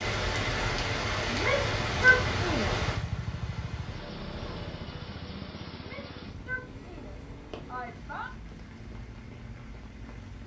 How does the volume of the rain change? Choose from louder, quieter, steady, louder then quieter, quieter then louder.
quieter.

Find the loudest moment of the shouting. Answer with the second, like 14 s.
2 s.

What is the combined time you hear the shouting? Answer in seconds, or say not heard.
4 s.